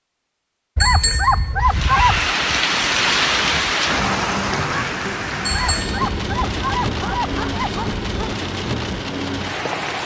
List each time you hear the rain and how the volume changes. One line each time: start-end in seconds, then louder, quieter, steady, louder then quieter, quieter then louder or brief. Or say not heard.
1.6-10.0 quieter.